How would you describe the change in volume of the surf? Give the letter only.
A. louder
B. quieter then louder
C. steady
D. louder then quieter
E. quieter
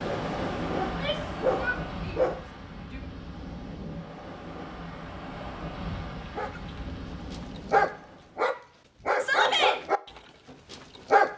E.